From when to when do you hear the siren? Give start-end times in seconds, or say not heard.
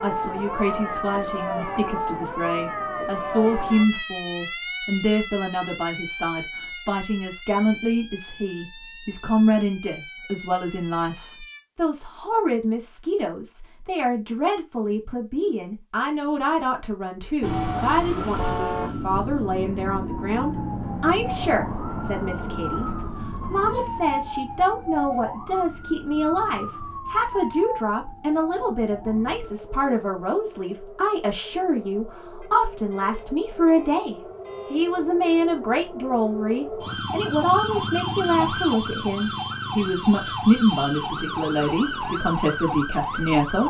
0.0-11.6, 17.4-43.6.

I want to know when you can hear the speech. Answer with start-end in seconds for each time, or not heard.
0.0-43.6.